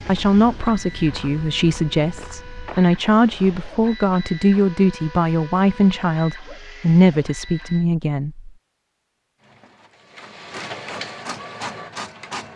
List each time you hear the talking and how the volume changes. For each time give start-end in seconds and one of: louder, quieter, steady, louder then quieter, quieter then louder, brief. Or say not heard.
0.1-8.5 steady.